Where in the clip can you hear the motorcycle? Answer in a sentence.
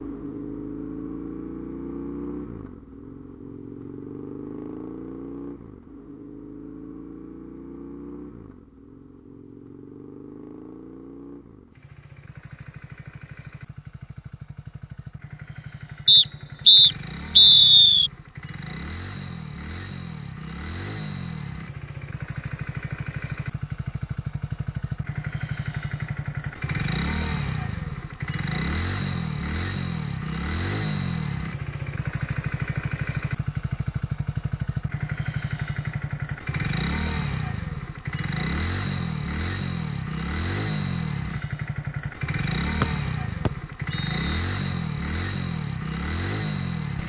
The motorcycle can be heard from 0.0 to 47.0 s.